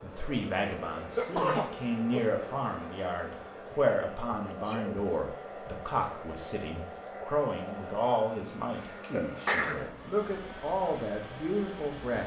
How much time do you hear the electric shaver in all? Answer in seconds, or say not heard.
not heard.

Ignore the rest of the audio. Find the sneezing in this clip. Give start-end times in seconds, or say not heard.
1.1-2.2, 4.5-5.0, 9.1-9.8.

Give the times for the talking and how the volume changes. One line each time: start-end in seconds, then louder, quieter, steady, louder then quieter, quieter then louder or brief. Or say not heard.
0.0-12.2 steady.